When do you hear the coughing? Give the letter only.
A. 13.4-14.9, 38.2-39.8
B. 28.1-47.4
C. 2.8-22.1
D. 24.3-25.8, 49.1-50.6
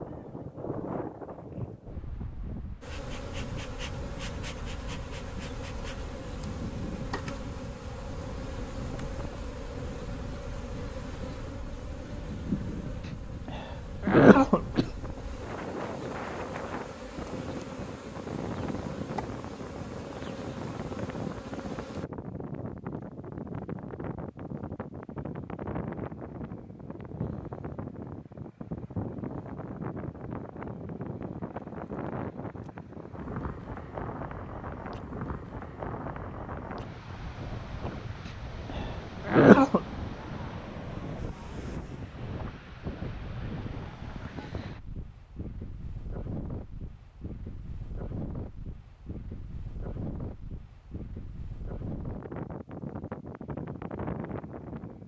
A.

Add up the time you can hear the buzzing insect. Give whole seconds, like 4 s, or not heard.
19 s.